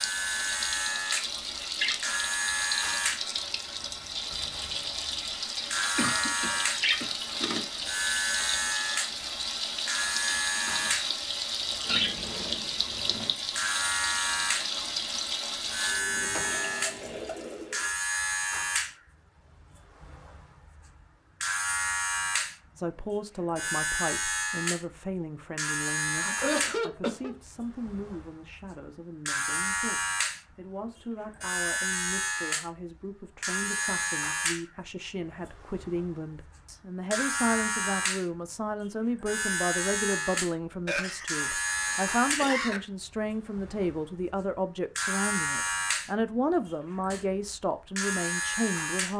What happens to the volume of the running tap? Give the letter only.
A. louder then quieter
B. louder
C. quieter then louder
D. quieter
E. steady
E.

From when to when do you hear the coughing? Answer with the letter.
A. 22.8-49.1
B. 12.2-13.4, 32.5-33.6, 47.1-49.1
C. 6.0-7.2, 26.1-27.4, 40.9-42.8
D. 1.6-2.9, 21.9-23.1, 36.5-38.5
C.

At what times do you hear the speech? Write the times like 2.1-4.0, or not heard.
22.8-49.1.